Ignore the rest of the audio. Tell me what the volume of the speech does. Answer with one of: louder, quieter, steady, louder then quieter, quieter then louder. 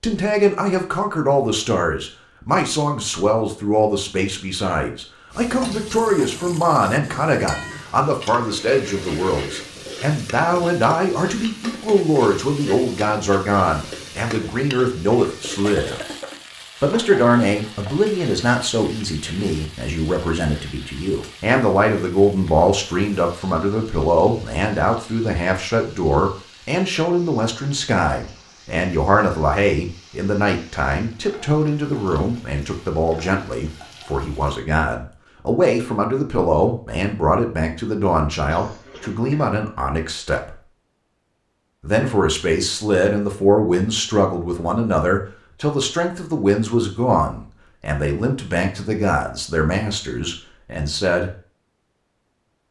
steady.